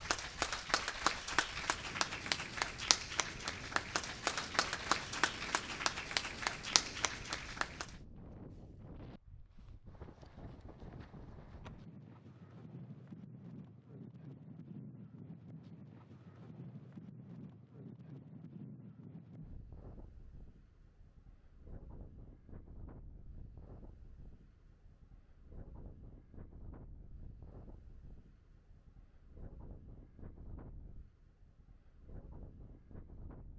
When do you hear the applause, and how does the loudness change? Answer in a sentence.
The applause can be heard from 0.0 to 7.9 s, at a steady volume.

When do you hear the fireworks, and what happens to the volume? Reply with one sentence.
The fireworks can't be heard in this clip.